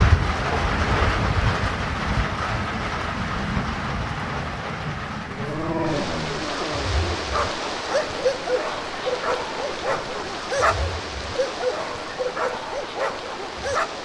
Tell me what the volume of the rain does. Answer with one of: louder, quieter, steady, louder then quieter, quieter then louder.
quieter.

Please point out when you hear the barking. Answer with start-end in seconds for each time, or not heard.
5.2-14.0.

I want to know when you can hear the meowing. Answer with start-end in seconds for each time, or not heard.
not heard.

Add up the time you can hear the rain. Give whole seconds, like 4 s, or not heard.
14 s.